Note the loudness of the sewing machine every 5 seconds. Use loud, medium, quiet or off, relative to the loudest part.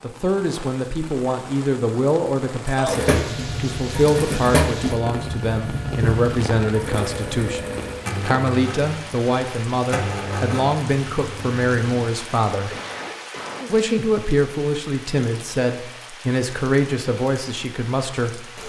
loud, medium, medium, off.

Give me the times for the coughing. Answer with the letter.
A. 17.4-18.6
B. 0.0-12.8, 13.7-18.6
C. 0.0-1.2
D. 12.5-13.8
D.